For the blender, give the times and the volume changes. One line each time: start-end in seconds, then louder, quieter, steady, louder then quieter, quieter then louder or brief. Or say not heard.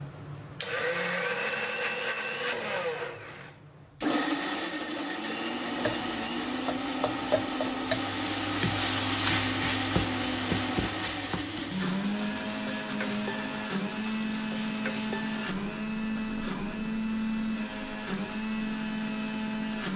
0.0-19.9 steady.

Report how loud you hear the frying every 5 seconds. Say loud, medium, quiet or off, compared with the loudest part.
off, loud, medium, quiet.